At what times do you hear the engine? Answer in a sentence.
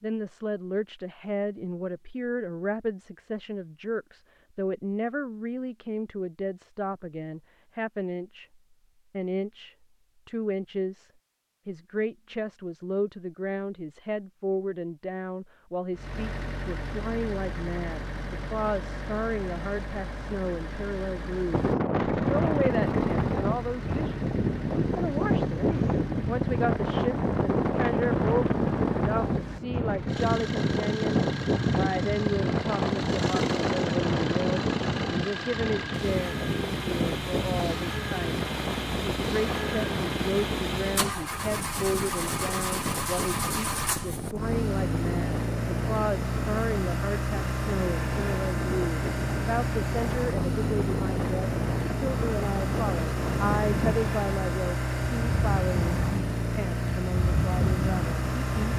The engine can be heard from 15.9 to 58.7 s.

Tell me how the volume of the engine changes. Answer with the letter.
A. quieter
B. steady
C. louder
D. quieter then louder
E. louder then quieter
C.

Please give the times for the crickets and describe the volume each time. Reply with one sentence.
The crickets can't be heard in this clip.